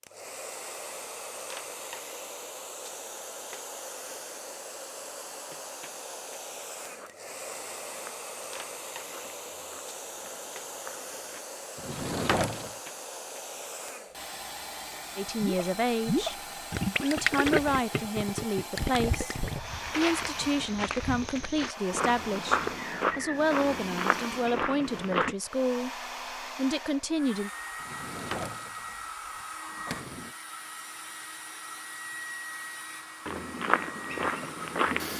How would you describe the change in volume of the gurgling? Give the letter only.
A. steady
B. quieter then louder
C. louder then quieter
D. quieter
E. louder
D.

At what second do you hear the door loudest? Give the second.
12 s.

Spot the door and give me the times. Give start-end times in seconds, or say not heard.
11.8-12.8, 27.8-30.4.